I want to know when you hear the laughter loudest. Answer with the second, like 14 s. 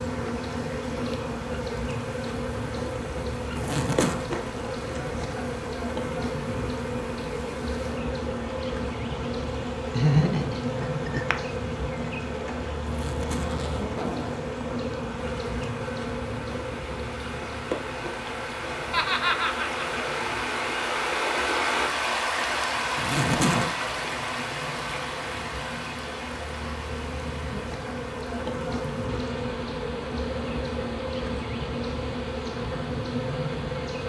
10 s.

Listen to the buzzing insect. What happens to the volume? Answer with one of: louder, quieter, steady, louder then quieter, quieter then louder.
quieter then louder.